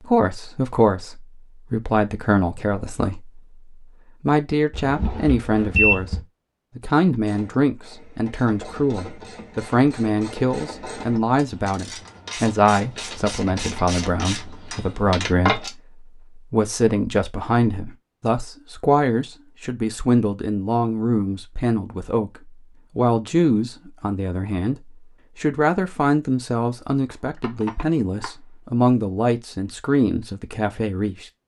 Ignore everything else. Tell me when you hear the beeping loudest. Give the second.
6 s.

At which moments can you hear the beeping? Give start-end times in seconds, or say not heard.
4.7-6.2, 27.4-28.3.